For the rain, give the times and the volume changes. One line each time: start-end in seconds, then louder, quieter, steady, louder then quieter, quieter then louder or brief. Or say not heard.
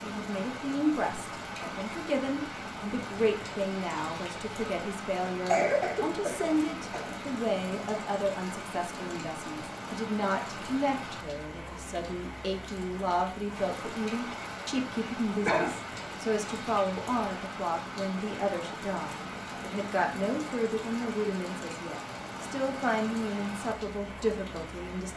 0.0-25.1 steady.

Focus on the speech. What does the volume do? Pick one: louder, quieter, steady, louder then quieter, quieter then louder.
steady.